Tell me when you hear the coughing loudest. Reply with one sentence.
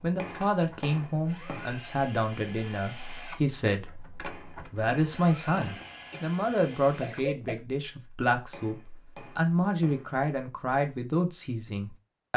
The loudest moment of the coughing is at 7 seconds.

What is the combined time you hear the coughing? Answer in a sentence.
You can hear the coughing for 2 seconds altogether.